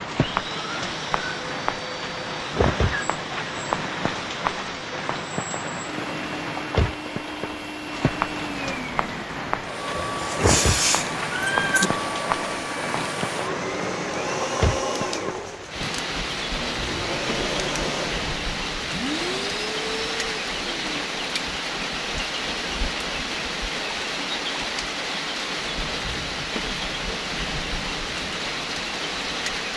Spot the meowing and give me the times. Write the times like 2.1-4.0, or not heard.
9.9-11.9.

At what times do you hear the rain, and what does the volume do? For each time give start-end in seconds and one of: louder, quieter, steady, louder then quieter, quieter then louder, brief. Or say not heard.
0.0-29.7 steady.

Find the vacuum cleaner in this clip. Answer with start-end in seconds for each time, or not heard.
0.1-21.0.